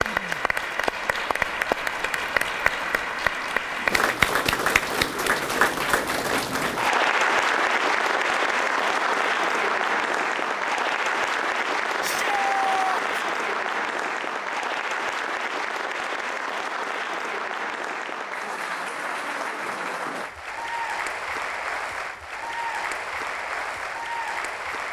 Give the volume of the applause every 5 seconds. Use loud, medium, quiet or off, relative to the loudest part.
loud, loud, loud, medium, medium.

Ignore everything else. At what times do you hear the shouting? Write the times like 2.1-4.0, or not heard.
12.0-13.2.